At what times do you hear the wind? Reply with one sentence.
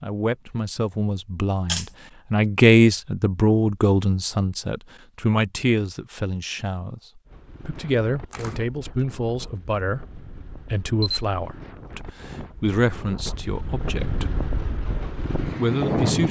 You can hear the wind from 7.2 to 16.2 s.